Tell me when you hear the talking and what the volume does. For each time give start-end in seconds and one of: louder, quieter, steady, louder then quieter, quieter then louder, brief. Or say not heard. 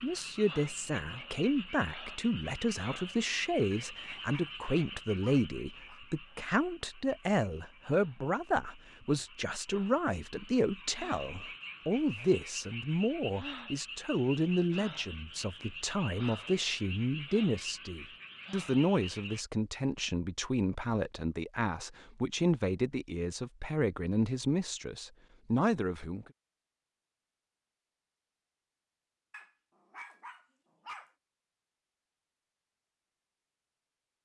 0.0-26.2 steady.